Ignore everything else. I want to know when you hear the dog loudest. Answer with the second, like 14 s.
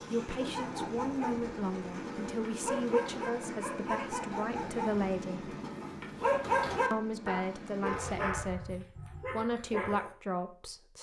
6 s.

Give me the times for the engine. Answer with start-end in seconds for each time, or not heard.
0.0-8.3.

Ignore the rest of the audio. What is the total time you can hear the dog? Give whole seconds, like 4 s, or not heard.
10 s.